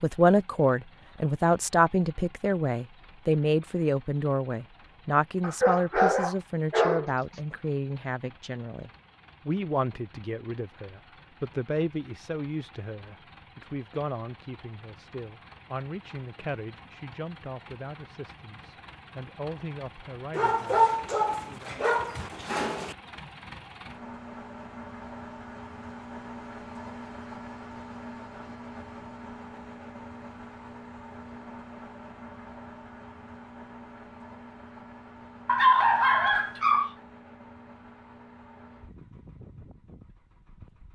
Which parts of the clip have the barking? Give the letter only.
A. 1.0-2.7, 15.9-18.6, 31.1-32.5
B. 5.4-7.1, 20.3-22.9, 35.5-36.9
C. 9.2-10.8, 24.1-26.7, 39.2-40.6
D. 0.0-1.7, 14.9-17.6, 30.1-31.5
B.